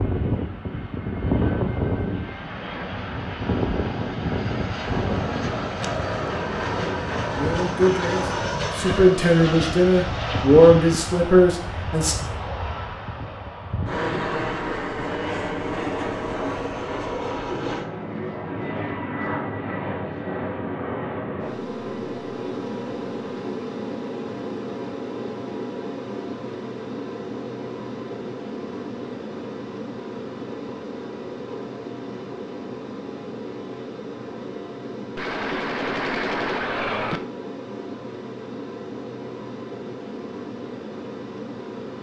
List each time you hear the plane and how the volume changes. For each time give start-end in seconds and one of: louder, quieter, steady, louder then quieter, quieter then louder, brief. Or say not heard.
0.0-41.9 quieter.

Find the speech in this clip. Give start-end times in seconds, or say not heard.
7.3-12.2.